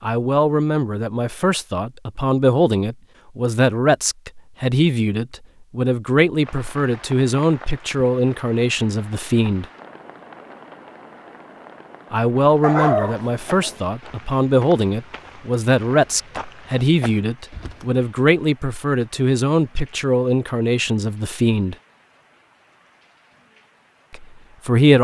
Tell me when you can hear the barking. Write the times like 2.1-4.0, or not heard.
12.6-13.8.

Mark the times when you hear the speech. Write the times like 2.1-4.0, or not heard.
0.0-9.7, 12.1-21.8, 24.1-24.9.